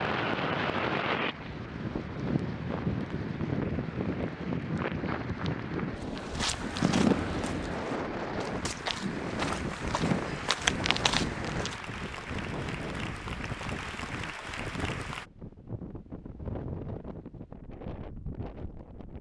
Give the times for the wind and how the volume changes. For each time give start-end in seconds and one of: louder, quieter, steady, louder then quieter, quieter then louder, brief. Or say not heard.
0.0-19.1 quieter.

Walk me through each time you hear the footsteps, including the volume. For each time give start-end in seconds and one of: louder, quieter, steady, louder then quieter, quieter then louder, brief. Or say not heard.
6.0-11.8 quieter then louder.